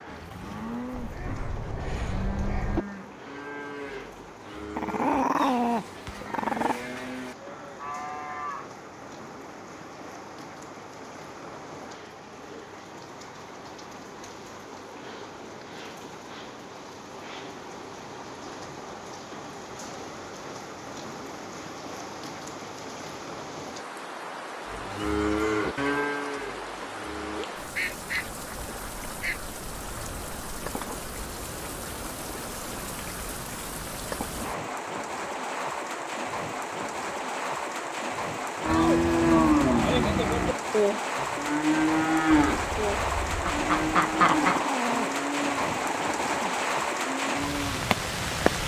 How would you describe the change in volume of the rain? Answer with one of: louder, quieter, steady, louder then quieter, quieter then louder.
louder.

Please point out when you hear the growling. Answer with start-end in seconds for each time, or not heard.
4.8-6.8, 44.1-46.6.